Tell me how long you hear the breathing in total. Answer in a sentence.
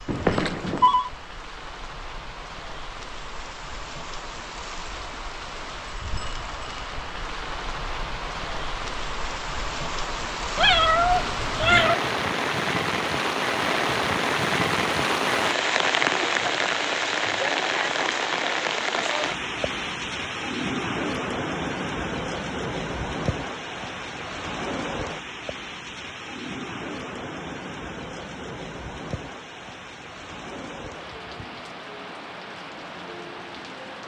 You can't hear the breathing here.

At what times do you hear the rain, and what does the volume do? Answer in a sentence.
You can hear the rain from 0.0 to 34.0 s, getting louder then quieter.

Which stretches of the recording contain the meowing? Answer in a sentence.
The meowing can be heard from 10.6 to 11.9 s.